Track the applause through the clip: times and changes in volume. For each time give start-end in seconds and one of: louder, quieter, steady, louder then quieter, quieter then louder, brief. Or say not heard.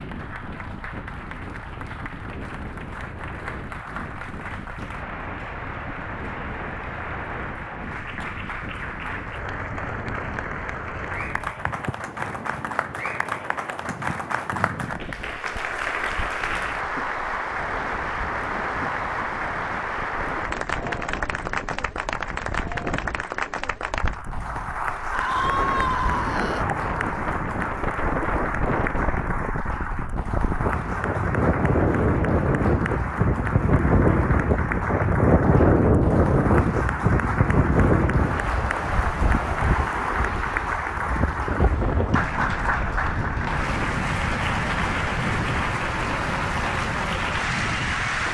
0.0-48.2 louder.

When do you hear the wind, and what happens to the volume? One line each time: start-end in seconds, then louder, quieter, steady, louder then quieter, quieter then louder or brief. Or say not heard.
0.0-48.2 louder then quieter.